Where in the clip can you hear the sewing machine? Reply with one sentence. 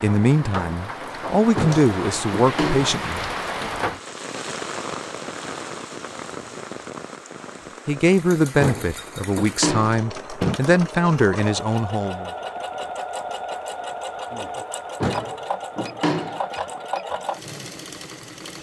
You can hear the sewing machine from 8.1 to 18.5 s.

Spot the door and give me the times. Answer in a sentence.
The door can be heard from 1.6 to 3.0 s, from 8.6 to 10.6 s and from 15.0 to 16.4 s.